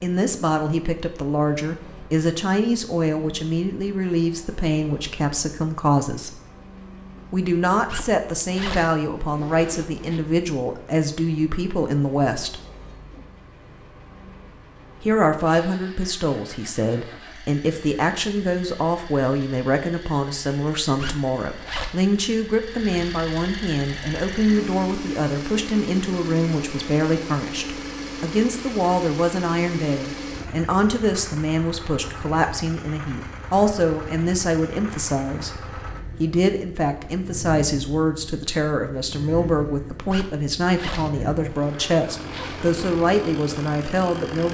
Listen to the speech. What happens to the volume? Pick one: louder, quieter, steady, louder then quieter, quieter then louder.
steady.